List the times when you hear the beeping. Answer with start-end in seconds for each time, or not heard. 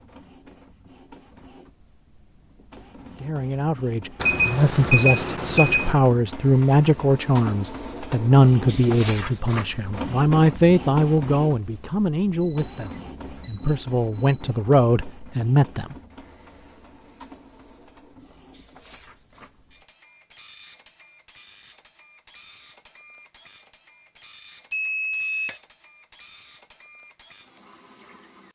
4.2-6.0, 12.4-14.6, 24.7-25.6.